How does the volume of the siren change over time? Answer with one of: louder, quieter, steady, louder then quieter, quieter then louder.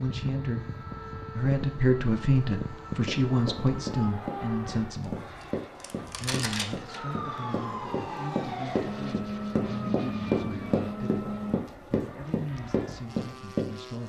louder.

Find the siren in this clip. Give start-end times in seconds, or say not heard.
0.0-11.6.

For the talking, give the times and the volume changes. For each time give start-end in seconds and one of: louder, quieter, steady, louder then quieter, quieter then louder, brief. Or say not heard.
0.0-14.0 quieter.